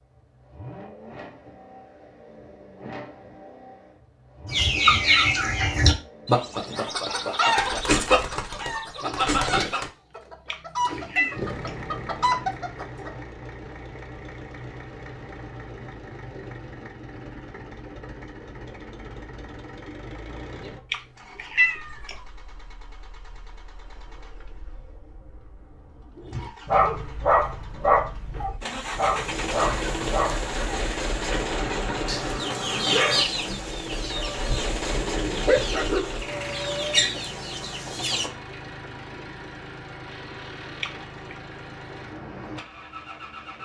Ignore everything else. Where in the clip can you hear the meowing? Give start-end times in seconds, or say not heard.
10.5-11.8, 20.9-22.1, 40.8-41.4.